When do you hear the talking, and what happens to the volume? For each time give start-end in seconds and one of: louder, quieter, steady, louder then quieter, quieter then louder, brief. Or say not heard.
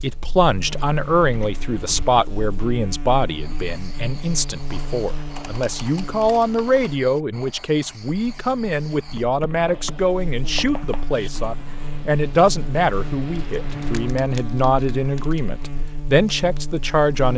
0.0-17.3 steady.